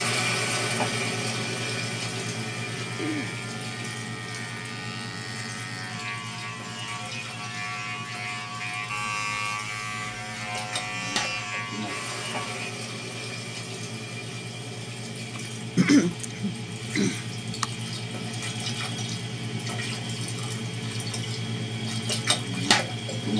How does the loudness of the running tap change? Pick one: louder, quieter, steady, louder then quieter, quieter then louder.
quieter then louder.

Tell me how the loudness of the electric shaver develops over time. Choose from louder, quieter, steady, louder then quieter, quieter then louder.
louder.